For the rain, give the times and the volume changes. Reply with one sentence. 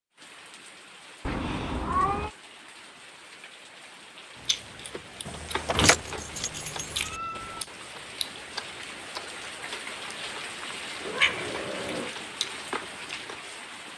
The rain can be heard from 0.1 to 13.9 s, getting louder.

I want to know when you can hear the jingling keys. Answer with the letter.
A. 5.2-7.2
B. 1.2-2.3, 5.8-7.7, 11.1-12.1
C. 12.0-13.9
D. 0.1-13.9
A.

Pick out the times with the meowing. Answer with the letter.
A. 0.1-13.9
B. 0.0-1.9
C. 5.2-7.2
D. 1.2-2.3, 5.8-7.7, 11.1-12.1
D.